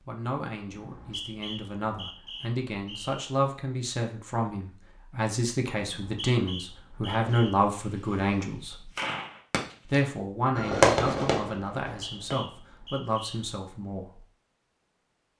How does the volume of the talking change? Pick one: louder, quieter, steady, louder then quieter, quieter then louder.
louder then quieter.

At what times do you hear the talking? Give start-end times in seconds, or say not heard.
0.1-8.9, 9.8-14.2.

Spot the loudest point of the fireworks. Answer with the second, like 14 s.
11 s.